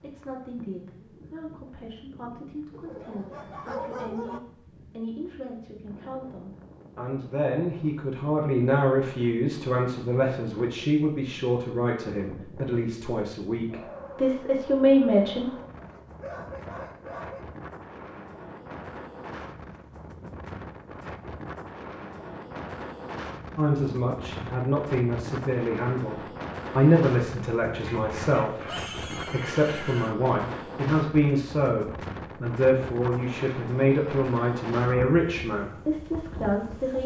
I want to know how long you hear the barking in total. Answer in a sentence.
You can hear the barking for 4 seconds altogether.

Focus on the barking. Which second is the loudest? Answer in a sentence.
The loudest moment of the barking is at 4 seconds.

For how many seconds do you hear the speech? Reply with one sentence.
The speech can be heard for 29 seconds in total.